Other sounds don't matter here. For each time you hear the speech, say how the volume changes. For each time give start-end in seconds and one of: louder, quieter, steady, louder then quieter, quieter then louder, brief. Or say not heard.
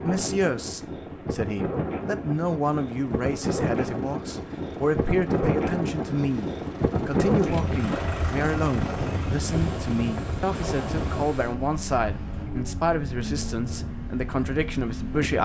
0.0-15.3 steady.